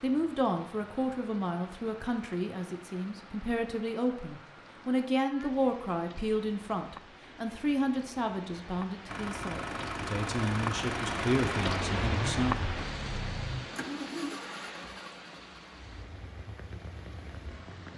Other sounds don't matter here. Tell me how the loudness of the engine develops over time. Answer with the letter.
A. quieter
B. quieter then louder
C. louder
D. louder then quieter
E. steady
A.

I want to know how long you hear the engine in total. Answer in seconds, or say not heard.
9 s.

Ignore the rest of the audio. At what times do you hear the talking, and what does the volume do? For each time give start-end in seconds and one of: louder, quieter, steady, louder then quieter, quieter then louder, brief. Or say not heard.
0.0-12.7 steady.